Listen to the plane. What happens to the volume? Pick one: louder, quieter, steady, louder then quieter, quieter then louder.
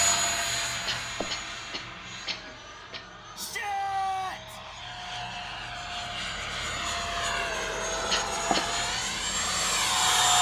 quieter then louder.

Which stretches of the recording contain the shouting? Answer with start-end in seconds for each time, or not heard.
3.4-4.6.